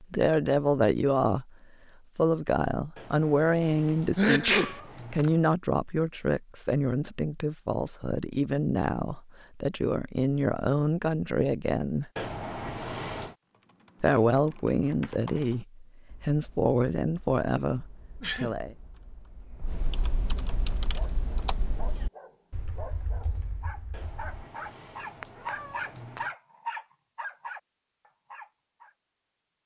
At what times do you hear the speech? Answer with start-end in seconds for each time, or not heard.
0.0-1.5, 2.1-12.1, 14.0-18.8.